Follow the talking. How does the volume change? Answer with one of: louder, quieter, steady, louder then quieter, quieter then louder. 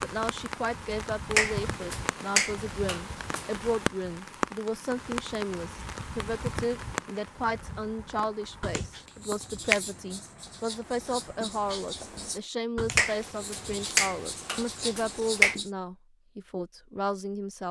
steady.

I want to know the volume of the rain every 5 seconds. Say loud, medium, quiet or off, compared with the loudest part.
loud, loud, quiet, off.